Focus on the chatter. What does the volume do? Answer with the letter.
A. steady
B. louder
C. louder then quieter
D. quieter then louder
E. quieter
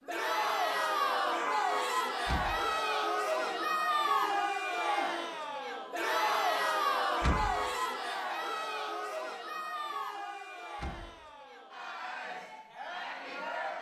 E.